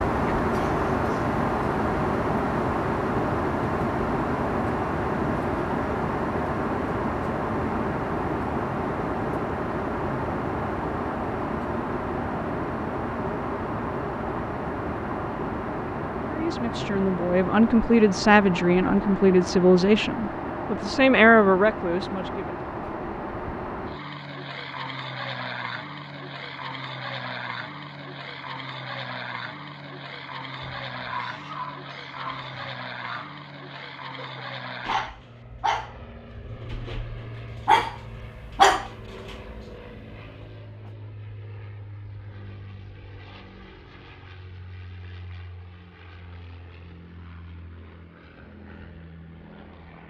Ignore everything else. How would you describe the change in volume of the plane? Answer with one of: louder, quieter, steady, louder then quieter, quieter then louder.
quieter.